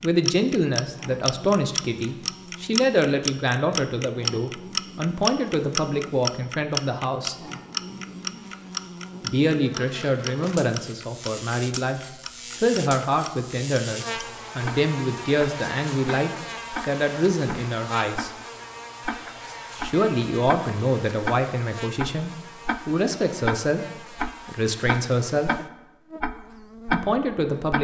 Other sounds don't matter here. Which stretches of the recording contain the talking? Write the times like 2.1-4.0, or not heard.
0.0-7.3, 9.2-18.3, 19.8-25.5, 26.9-27.8.